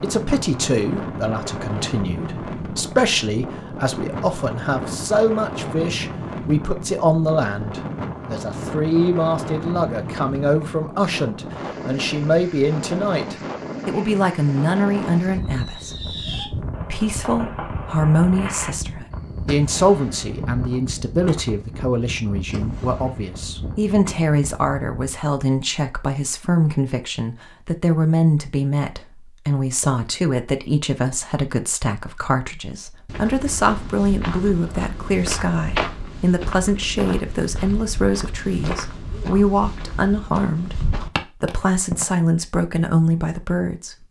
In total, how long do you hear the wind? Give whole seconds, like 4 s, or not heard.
25 s.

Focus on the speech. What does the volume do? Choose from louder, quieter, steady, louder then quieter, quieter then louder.
steady.